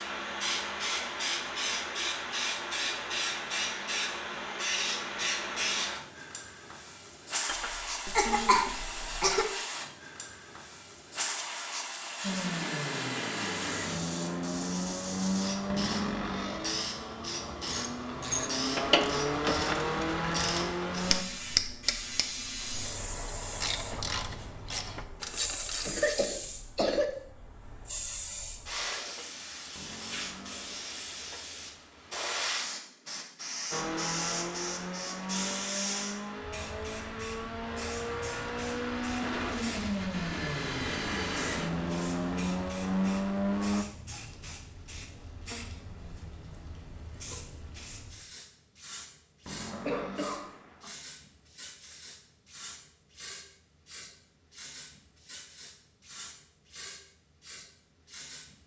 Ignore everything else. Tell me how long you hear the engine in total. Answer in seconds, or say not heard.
19 s.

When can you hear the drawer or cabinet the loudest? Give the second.
16 s.